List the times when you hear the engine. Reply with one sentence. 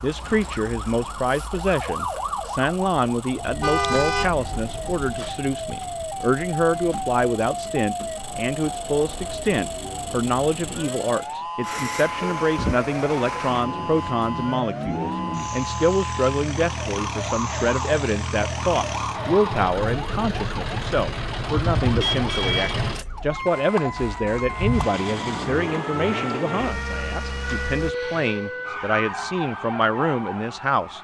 You can hear the engine from 0.0 to 27.9 s.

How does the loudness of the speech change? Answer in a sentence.
The loudness of the speech stays about the same.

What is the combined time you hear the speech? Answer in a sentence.
You can hear the speech for 31 seconds altogether.